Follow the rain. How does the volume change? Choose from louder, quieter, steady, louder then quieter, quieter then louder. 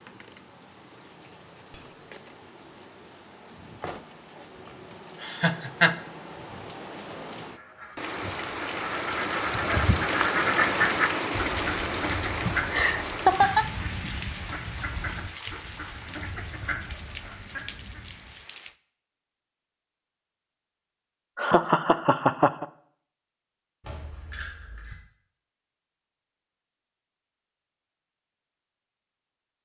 louder then quieter.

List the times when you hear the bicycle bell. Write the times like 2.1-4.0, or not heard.
1.7-2.4, 23.9-25.0.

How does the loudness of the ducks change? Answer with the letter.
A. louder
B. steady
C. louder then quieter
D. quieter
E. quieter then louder
C.